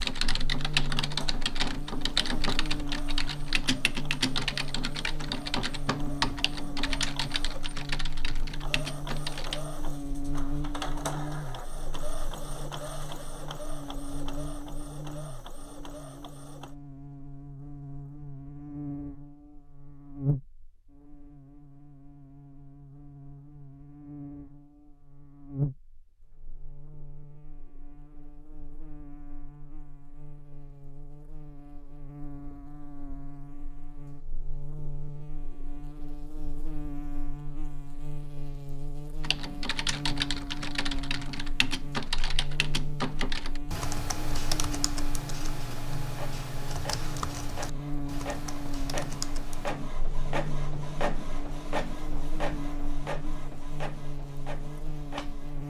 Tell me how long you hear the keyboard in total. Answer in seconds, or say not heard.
20 s.